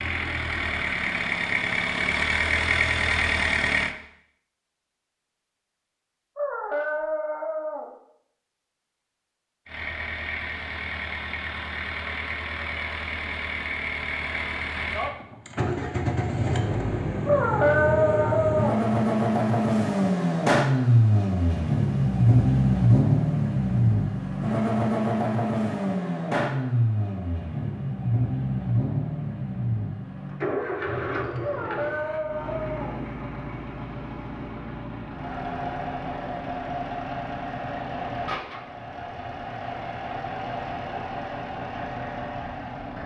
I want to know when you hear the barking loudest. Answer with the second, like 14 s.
18 s.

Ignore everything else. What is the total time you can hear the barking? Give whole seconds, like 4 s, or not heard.
5 s.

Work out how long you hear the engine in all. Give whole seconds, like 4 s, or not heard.
37 s.